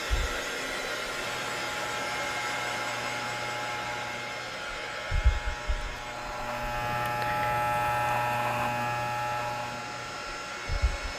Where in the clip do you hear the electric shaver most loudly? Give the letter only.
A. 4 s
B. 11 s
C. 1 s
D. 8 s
D.